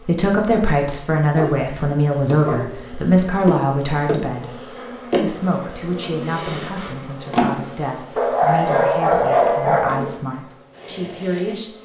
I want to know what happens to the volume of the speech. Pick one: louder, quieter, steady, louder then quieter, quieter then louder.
quieter.